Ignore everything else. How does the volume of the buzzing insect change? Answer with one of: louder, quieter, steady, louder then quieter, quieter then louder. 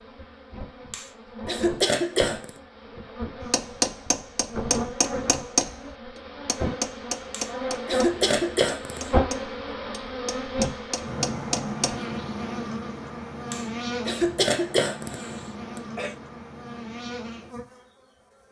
louder then quieter.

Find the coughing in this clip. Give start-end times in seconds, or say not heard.
0.9-2.5, 7.3-9.1, 13.5-16.1.